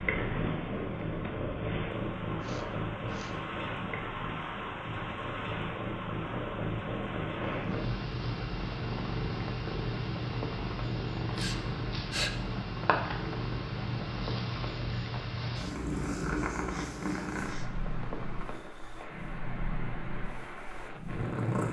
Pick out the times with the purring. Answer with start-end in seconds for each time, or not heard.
0.0-21.6.